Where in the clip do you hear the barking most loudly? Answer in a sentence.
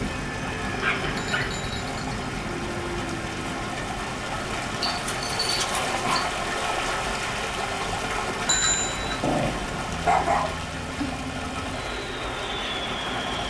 The loudest moment of the barking is at 10 seconds.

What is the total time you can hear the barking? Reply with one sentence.
You can hear the barking for 4 seconds altogether.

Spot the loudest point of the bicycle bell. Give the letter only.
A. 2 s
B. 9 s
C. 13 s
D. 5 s
B.